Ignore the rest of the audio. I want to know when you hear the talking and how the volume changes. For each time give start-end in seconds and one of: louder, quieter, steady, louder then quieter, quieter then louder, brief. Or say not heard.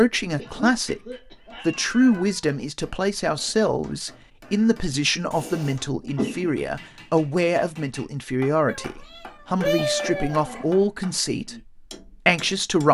0.0-1.0 brief
1.6-12.8 steady.